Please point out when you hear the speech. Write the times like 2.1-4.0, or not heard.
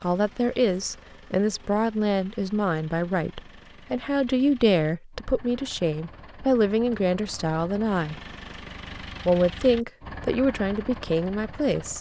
0.0-8.2, 9.2-11.9.